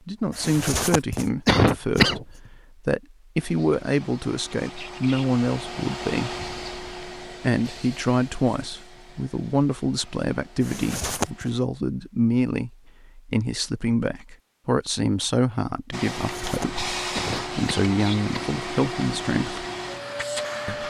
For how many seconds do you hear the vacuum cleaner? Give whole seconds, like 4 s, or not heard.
13 s.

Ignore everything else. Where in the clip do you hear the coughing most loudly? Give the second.
2 s.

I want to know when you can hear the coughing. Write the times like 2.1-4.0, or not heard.
0.3-2.2, 10.6-11.5, 16.2-18.5.